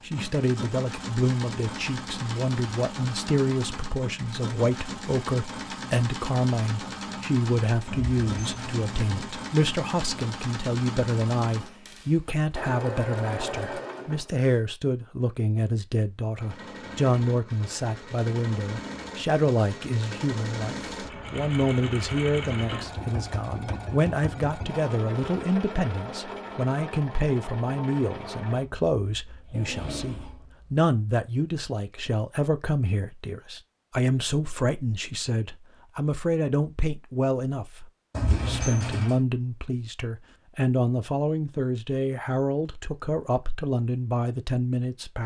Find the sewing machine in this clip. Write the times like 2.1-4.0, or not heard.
0.0-14.5, 16.4-30.9.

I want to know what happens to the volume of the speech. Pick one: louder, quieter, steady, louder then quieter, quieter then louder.
steady.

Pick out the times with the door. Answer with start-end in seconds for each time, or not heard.
7.9-9.3, 38.1-39.2.